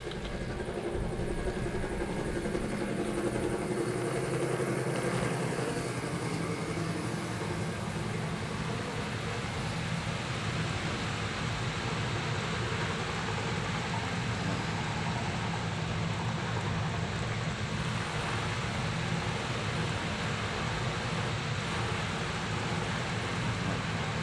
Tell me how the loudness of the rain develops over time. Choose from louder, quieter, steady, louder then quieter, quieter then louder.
louder.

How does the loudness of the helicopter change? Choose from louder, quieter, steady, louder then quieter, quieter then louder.
quieter.